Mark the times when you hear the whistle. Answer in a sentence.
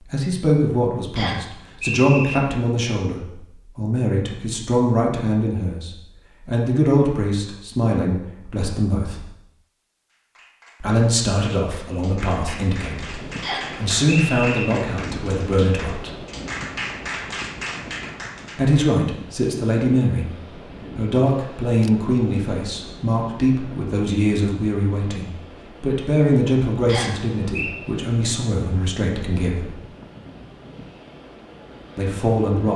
The whistle can be heard from 1.1 to 2.4 s, from 13.4 to 14.7 s and from 26.9 to 27.8 s.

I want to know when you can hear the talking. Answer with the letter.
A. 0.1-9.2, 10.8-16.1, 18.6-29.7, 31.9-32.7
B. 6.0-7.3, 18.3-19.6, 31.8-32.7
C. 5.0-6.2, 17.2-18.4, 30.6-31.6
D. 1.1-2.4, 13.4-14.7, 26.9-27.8
A.